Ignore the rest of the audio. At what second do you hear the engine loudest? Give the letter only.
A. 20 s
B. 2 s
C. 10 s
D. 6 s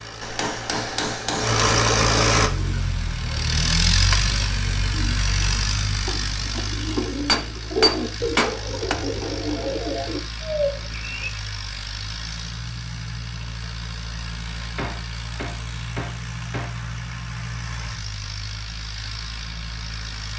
B.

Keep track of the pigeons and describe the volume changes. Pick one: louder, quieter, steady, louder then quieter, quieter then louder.
louder.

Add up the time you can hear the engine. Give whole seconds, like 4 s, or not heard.
20 s.